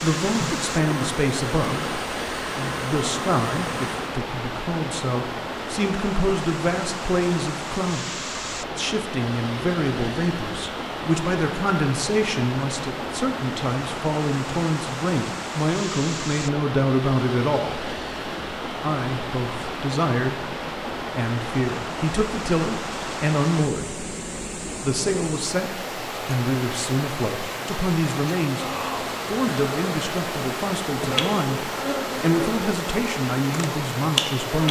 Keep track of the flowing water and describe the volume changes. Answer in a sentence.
The volume of the flowing water stays about the same.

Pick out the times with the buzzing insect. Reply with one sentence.
You can hear the buzzing insect from 0.0 to 4.2 s and from 28.6 to 34.6 s.